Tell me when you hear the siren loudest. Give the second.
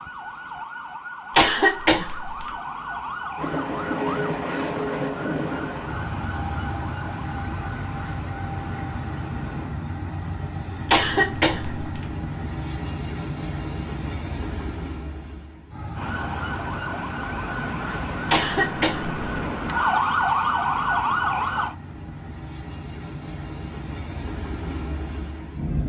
20 s.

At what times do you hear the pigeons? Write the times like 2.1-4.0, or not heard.
not heard.